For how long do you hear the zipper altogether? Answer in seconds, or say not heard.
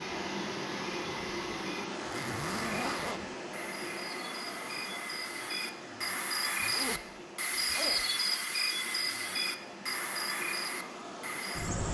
3 s.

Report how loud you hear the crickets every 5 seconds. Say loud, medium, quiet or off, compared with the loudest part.
medium, loud, loud.